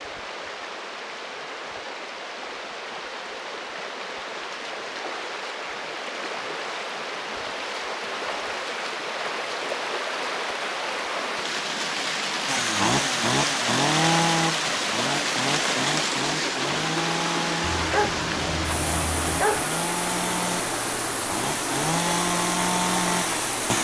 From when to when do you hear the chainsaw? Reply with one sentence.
The chainsaw can be heard from 12.4 to 23.7 s.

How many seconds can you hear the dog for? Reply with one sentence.
The dog can be heard for 2 seconds in total.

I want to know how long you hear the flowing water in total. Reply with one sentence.
You can hear the flowing water for 24 seconds altogether.